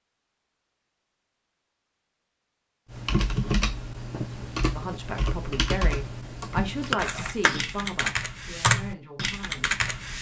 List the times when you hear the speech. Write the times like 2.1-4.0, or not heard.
4.5-9.8.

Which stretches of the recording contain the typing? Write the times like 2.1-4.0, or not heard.
2.9-10.1.